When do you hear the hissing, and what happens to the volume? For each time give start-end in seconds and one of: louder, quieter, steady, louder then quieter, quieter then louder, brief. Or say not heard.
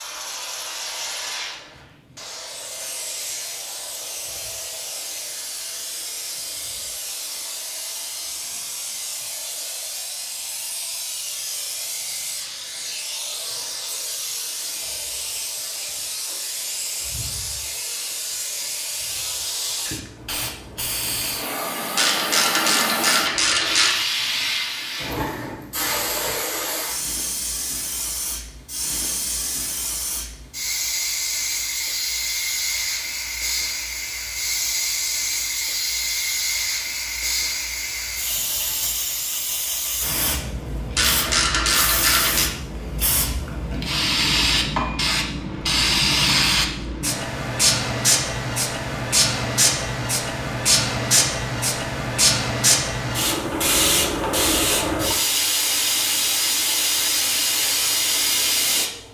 0.0-59.0 louder.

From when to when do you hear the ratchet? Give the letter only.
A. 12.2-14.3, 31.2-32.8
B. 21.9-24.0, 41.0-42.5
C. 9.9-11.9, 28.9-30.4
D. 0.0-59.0
B.